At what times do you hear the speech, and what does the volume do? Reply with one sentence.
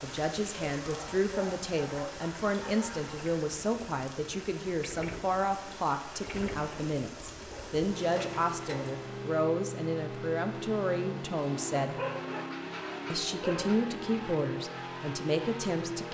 You can hear the speech from 0.0 to 11.9 s, at a steady volume; and briefly from 13.1 to 16.0 s.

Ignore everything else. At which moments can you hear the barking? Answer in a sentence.
You can hear the barking from 0.6 to 3.1 s, from 7.5 to 8.9 s and from 11.8 to 13.8 s.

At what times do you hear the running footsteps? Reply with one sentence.
The running footsteps can't be heard in this clip.